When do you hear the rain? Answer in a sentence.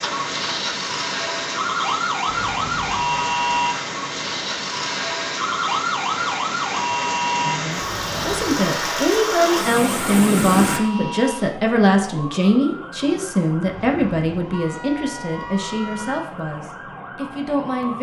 You can hear the rain from 0.0 to 10.8 s.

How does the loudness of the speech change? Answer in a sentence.
The loudness of the speech goes down.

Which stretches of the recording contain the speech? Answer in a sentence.
The speech can be heard from 7.4 to 17.9 s.